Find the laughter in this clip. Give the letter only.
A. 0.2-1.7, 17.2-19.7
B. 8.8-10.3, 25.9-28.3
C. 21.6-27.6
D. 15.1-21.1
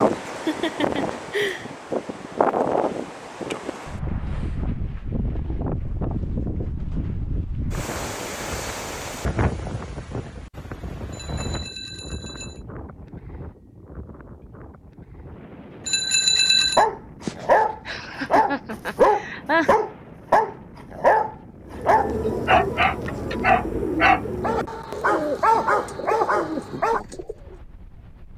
A.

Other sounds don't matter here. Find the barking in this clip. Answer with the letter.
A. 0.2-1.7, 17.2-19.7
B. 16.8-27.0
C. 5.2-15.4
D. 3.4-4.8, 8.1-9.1
B.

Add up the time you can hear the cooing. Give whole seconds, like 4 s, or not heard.
6 s.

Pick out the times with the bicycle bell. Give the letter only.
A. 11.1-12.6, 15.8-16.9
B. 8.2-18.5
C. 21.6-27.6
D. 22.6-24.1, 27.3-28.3
A.